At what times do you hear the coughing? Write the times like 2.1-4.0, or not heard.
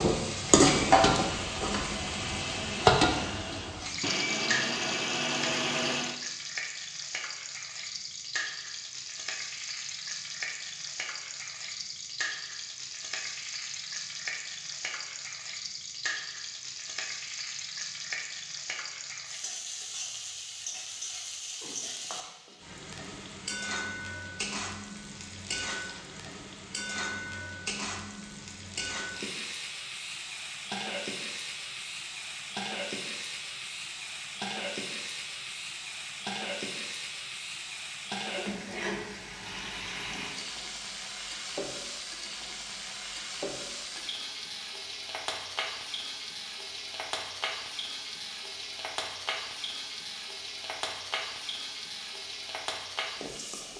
not heard.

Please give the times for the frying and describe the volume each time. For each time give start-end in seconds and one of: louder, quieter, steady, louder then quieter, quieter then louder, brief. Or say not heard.
0.0-53.7 quieter.